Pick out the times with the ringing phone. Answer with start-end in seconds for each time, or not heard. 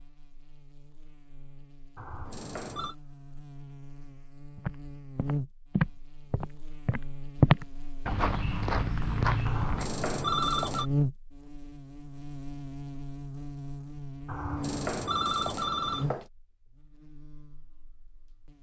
1.9-3.0, 9.4-10.8, 14.2-16.2.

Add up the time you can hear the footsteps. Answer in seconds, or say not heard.
5 s.